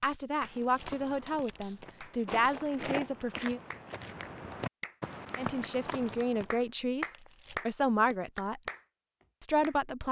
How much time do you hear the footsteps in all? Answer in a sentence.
The footsteps can be heard for 6 seconds in total.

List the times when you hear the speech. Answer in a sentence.
You can hear the speech from 0.0 to 3.6 s, from 5.3 to 8.6 s and from 9.4 to 10.0 s.